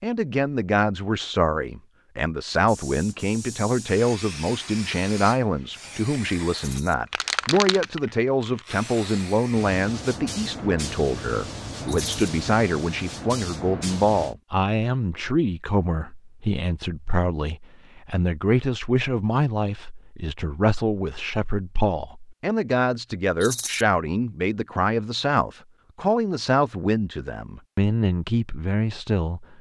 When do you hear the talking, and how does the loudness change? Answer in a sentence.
You can hear the talking from 0.0 to 29.5 s, at a steady volume.